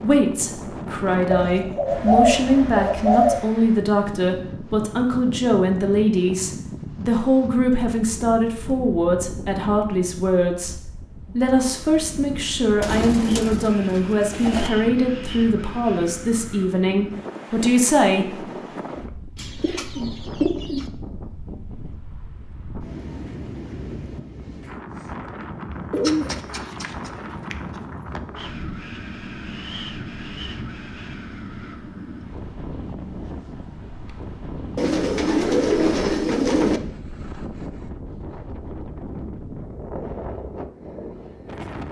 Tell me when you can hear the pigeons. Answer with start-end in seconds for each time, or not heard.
1.3-3.5, 12.8-14.7, 19.4-20.9, 25.9-27.6, 34.8-36.8.